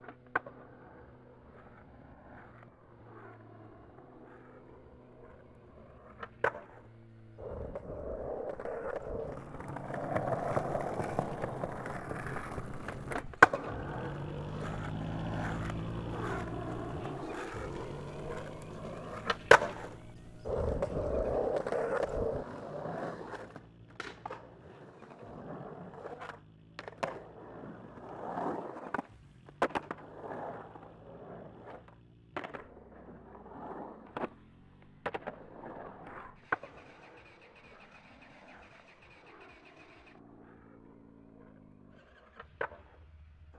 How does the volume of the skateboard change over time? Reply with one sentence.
The loudness of the skateboard goes up, then down.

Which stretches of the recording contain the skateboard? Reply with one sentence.
You can hear the skateboard from 0.0 to 43.5 s.